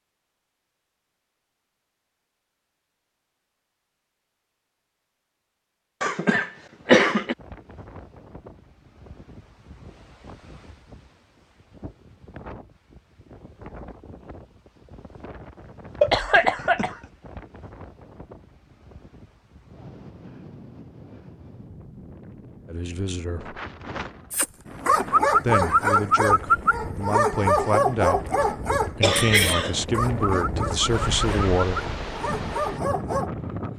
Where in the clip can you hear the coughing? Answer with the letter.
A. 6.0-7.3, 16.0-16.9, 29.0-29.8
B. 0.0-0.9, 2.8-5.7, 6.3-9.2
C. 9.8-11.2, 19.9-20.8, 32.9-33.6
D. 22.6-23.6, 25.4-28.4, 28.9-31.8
A.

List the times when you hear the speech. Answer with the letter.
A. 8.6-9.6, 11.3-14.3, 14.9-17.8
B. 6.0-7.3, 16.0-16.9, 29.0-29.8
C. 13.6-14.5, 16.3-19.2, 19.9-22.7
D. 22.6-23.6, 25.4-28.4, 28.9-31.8
D.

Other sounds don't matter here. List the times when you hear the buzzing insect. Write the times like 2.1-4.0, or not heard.
not heard.